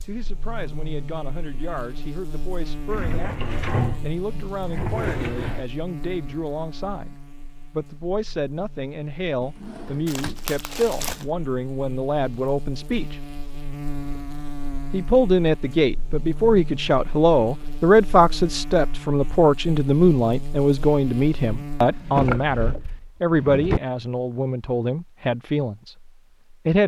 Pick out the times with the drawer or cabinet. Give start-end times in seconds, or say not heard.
2.9-5.7, 9.4-10.4, 21.9-23.8.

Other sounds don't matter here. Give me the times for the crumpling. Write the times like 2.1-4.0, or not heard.
10.1-11.2.